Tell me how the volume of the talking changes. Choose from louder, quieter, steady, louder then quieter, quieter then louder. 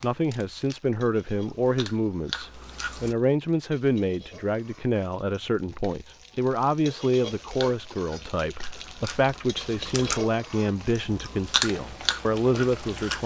steady.